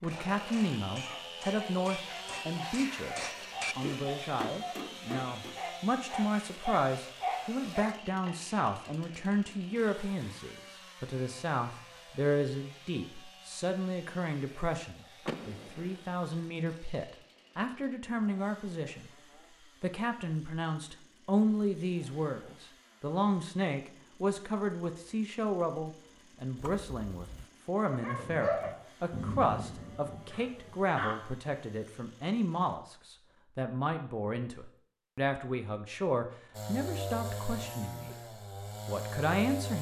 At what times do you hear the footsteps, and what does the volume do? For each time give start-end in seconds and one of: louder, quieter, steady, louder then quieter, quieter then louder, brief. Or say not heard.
not heard.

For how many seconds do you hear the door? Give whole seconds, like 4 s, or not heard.
2 s.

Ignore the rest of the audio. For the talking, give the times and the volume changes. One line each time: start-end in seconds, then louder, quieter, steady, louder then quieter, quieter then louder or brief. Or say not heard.
0.0-19.1 steady
19.8-38.1 steady
38.9-39.7 brief.